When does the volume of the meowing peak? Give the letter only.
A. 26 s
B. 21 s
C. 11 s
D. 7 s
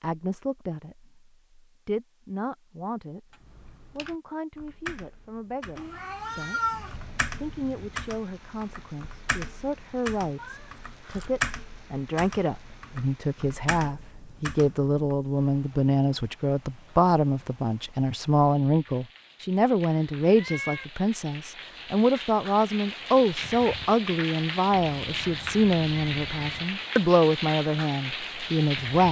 D.